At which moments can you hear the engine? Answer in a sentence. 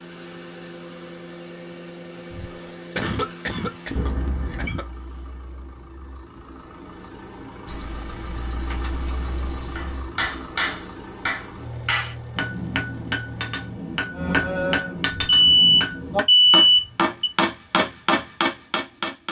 You can hear the engine from 0.0 to 13.8 s.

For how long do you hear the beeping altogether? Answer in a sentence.
You can hear the beeping for 5 seconds altogether.